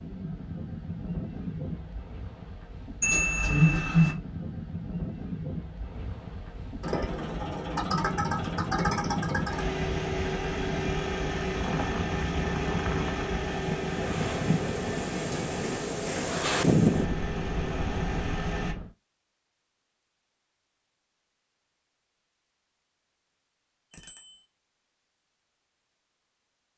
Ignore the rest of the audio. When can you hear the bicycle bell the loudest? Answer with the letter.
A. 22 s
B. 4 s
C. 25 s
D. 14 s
B.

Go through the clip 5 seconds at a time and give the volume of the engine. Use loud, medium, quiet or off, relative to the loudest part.
off, loud, loud, medium, off, off.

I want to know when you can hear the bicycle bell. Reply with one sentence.
You can hear the bicycle bell from 3.0 to 4.2 s and from 23.9 to 24.4 s.